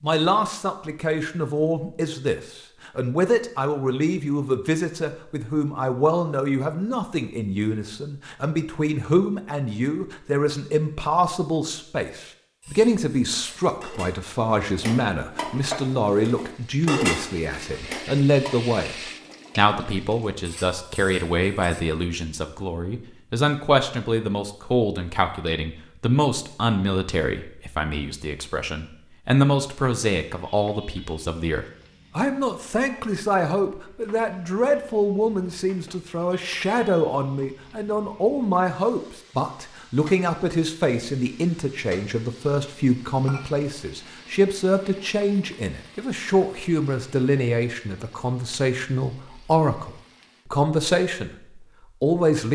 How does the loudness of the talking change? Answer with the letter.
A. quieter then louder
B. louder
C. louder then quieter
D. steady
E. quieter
D.